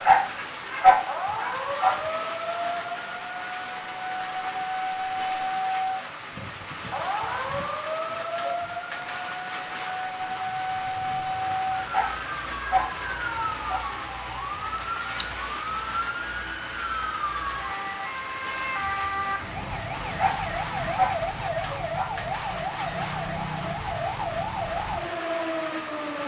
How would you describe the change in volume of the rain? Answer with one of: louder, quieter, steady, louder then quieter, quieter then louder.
steady.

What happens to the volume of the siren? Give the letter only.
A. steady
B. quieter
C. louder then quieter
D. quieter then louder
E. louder
A.